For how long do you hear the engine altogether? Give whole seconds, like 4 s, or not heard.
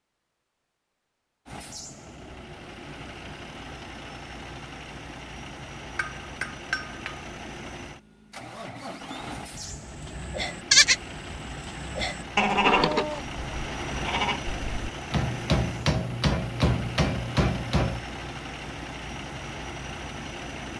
19 s.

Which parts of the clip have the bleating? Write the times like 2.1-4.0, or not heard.
9.6-14.9.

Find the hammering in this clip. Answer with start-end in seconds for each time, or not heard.
6.0-7.2, 15.1-18.0.